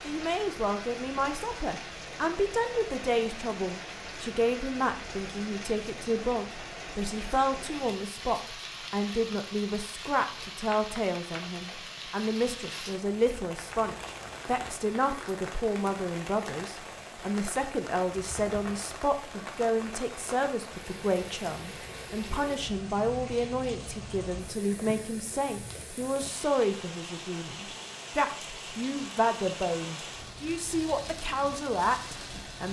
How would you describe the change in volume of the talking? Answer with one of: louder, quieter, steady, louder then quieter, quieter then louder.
steady.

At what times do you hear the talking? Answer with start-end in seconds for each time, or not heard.
0.0-32.6.